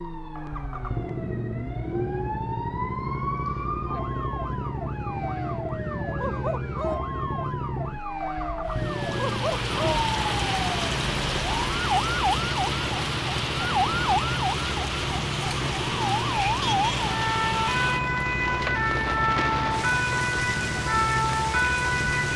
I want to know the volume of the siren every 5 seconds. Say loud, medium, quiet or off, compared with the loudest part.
medium, medium, loud, loud, loud.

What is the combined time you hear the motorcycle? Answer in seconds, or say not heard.
22 s.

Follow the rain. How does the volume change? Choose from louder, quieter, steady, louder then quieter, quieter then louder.
steady.